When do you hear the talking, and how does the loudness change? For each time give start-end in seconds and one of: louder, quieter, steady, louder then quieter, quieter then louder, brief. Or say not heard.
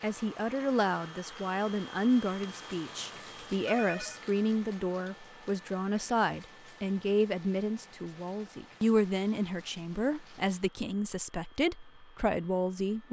0.0-13.0 steady.